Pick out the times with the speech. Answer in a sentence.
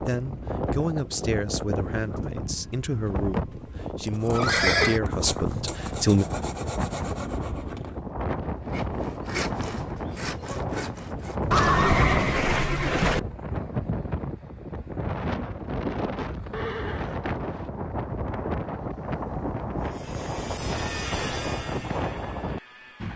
The speech can be heard from 0.1 to 6.2 s.